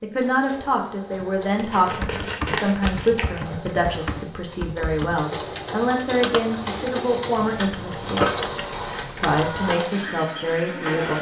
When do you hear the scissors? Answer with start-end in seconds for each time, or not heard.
1.6-3.5, 7.1-8.3.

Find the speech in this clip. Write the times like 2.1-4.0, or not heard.
0.0-8.2, 9.2-11.1.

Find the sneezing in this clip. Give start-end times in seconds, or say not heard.
not heard.